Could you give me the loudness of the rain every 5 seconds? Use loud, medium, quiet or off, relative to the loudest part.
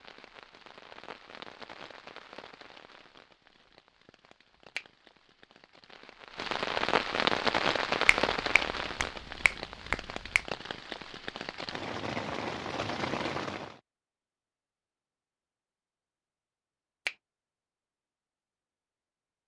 quiet, loud, medium, off.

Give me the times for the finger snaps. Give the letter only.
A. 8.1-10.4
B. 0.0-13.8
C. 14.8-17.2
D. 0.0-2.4
A.